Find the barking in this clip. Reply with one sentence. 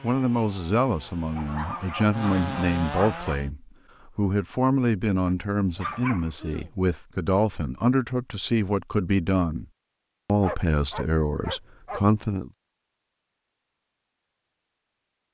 You can hear the barking from 1.4 to 3.4 s, from 5.2 to 6.7 s and from 10.4 to 12.1 s.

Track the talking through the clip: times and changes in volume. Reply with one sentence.
The talking can be heard from 0.0 to 9.7 s, at a steady volume; and briefly from 10.2 to 12.5 s.